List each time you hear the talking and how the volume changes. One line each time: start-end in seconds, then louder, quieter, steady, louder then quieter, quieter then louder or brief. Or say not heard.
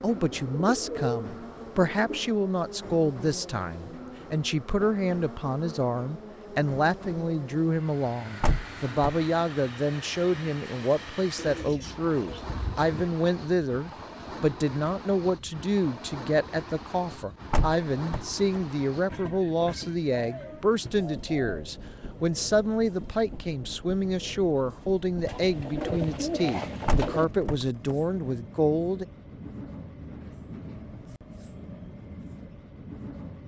0.0-29.1 steady.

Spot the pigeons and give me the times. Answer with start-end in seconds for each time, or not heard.
0.1-2.3, 11.3-13.1, 20.1-21.6, 25.2-27.2.